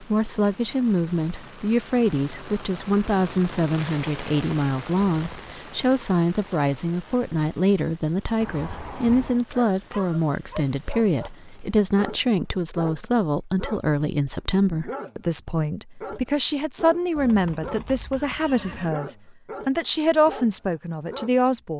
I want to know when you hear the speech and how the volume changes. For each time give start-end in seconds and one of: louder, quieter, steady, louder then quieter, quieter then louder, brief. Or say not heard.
0.0-21.7 steady.